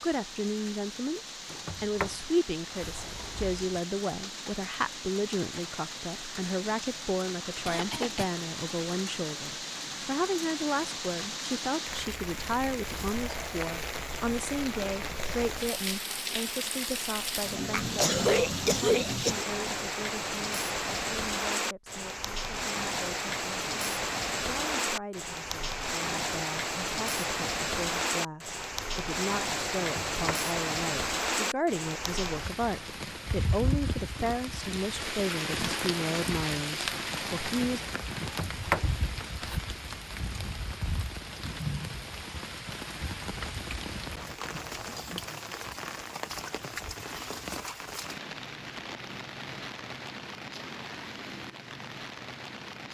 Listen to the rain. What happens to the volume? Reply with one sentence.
The volume of the rain goes up, then down.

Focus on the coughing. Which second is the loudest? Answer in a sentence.
The volume of the coughing peaks at 18 seconds.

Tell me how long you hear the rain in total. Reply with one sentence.
The rain can be heard for 53 seconds in total.